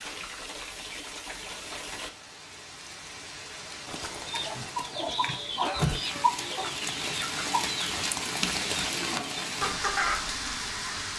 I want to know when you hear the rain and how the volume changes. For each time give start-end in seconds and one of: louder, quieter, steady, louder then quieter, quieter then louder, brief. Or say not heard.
0.0-11.1 louder.